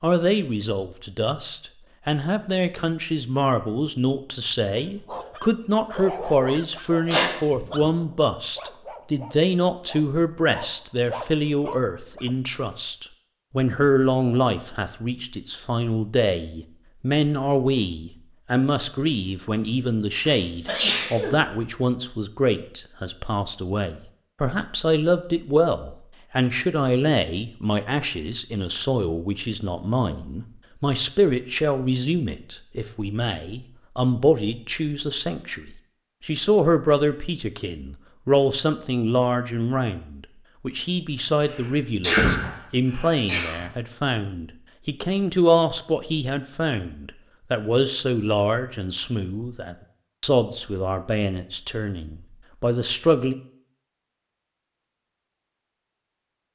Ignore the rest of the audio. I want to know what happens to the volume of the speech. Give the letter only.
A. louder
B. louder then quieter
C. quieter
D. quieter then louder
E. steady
E.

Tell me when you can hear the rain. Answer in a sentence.
You can't hear the rain here.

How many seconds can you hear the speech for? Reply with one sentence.
You can hear the speech for 53 seconds altogether.